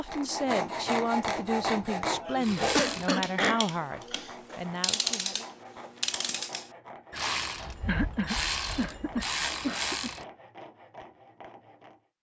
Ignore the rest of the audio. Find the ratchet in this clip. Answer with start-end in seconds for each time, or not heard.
2.4-10.2.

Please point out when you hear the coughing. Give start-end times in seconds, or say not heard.
2.1-4.5, 7.8-10.1.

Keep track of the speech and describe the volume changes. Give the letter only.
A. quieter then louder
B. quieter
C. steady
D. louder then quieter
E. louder
B.